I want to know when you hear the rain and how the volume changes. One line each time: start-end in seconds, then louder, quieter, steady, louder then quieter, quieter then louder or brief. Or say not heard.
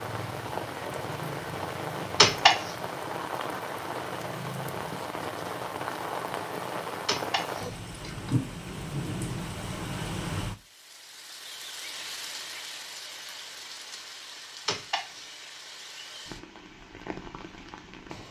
0.0-18.2 quieter.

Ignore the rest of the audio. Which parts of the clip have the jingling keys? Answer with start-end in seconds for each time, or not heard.
2.1-2.7, 7.0-8.4, 14.7-15.3.